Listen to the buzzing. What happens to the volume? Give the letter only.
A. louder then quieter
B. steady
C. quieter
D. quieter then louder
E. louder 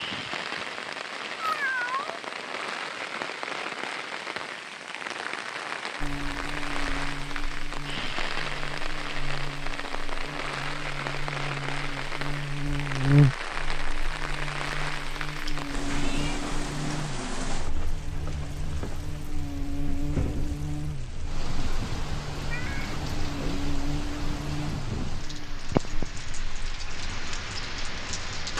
A.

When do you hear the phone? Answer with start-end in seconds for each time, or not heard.
not heard.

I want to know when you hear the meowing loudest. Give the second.
2 s.